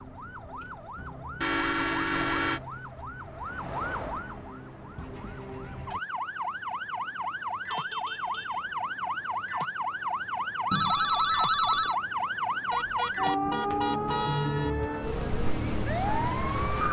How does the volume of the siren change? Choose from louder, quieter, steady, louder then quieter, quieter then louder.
louder.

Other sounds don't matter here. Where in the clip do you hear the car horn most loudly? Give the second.
2 s.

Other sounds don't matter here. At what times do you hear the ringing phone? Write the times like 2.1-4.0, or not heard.
10.7-11.9.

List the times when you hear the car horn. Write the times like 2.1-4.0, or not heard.
1.4-2.6, 7.7-8.7, 12.7-14.8.